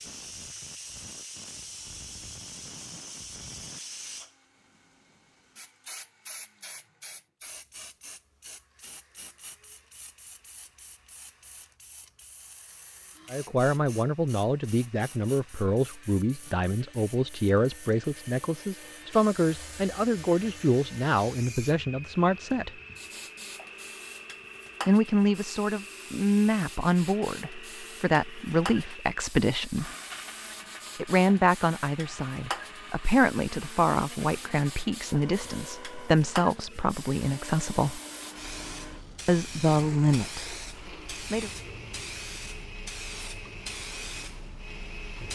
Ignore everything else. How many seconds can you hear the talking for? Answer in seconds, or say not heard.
24 s.